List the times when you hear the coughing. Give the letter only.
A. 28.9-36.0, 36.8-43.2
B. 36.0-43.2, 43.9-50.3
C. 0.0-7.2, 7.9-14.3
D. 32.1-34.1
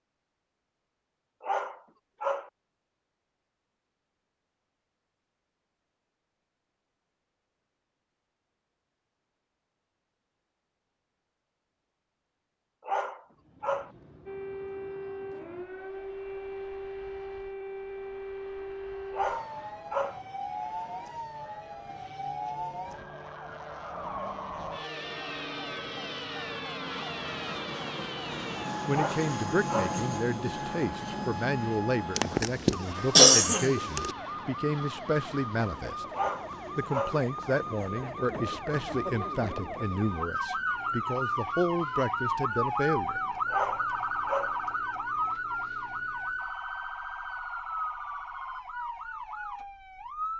D.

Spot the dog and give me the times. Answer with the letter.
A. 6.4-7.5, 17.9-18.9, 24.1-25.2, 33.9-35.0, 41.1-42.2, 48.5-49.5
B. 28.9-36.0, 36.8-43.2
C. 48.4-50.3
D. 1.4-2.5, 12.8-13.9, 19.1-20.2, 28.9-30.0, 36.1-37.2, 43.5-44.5
D.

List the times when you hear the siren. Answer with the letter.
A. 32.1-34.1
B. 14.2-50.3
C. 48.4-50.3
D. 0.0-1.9
B.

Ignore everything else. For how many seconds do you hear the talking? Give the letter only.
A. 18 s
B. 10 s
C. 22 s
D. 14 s
D.